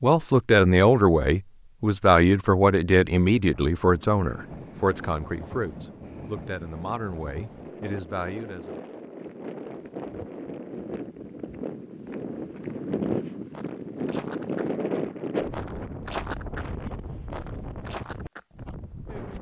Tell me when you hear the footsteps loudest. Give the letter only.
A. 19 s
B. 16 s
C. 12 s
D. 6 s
B.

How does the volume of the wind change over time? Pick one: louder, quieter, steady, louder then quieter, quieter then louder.
louder then quieter.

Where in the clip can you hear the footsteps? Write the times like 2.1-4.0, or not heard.
8.8-14.8, 15.5-19.3.